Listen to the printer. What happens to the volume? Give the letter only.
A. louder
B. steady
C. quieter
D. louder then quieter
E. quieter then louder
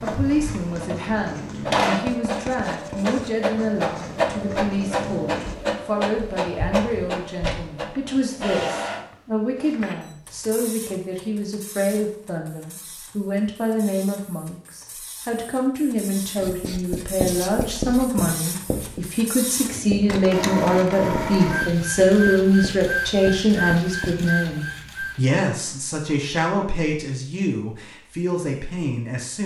E.